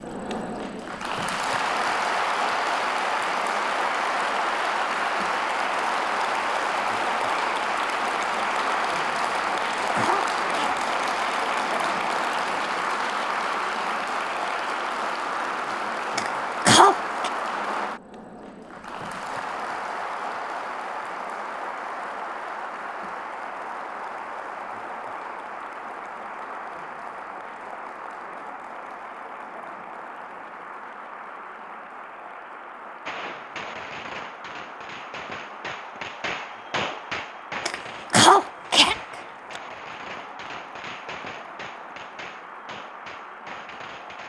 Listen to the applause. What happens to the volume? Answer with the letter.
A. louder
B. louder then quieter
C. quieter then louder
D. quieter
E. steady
D.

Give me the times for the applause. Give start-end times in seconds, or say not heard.
0.0-44.2.